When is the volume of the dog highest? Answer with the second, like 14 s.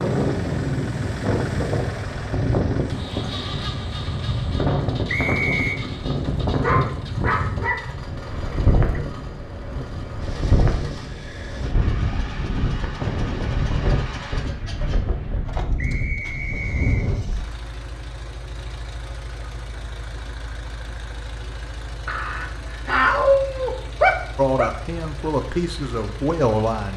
23 s.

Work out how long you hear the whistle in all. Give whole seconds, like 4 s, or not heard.
2 s.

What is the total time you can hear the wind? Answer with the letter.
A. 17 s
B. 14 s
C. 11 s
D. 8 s
A.